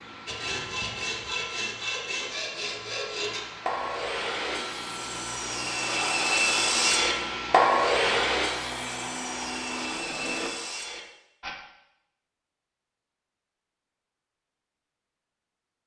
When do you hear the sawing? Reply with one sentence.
The sawing can be heard from 0.2 to 11.6 s.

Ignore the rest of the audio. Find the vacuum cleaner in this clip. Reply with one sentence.
The vacuum cleaner can be heard from 0.0 to 10.5 s.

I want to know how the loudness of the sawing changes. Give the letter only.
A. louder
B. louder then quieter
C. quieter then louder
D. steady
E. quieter
B.